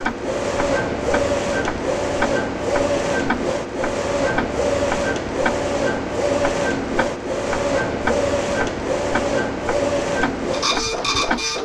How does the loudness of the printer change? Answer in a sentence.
The volume of the printer stays about the same.